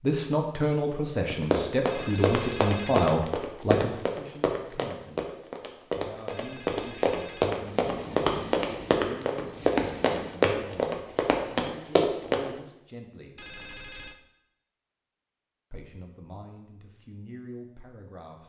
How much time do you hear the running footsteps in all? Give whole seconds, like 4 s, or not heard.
11 s.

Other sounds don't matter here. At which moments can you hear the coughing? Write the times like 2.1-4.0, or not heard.
not heard.